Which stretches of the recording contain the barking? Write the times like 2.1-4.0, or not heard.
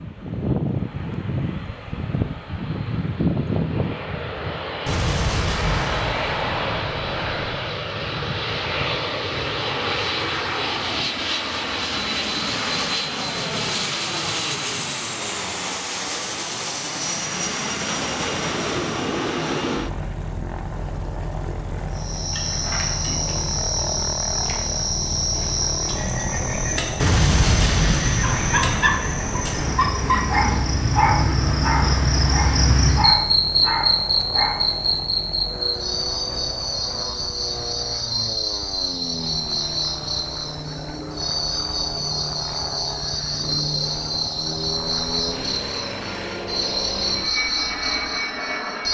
28.4-35.0.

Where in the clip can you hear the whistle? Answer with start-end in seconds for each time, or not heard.
not heard.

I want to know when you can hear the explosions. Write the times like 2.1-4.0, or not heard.
4.8-7.6, 27.0-29.8.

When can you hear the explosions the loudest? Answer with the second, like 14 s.
27 s.